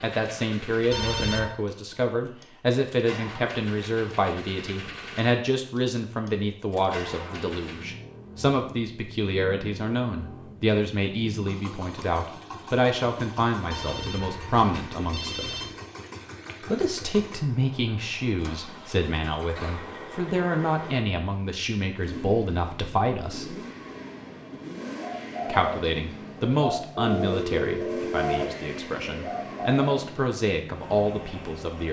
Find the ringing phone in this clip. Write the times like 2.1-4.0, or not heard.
0.9-1.6, 13.7-15.7, 26.9-28.5.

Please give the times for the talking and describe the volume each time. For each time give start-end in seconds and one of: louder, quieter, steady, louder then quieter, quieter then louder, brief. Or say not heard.
0.0-15.5 steady
16.6-23.6 steady
25.4-31.8 quieter then louder.